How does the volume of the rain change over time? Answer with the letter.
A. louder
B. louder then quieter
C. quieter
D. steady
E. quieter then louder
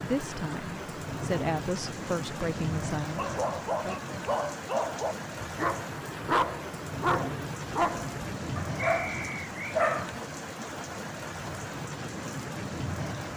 D.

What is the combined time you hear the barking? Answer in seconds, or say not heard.
7 s.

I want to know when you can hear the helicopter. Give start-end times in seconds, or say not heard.
not heard.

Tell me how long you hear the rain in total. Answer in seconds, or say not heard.
13 s.